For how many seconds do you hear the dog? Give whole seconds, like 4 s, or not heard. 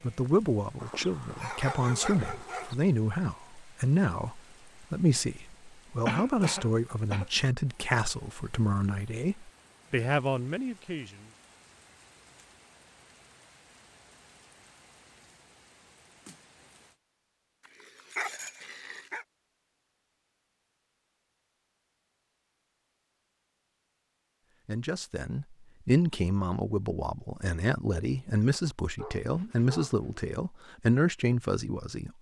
5 s.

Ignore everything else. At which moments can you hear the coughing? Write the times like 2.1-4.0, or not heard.
6.0-7.2.